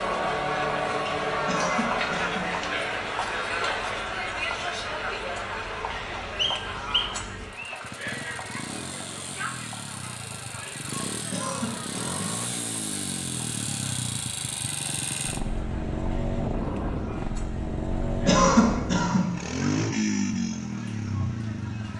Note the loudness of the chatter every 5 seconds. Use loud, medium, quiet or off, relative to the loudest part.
loud, medium, quiet, quiet, quiet.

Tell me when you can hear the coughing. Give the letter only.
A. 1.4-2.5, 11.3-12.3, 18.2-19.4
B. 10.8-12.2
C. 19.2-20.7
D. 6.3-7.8
A.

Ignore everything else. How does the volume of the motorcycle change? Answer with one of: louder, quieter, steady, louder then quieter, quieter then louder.
louder.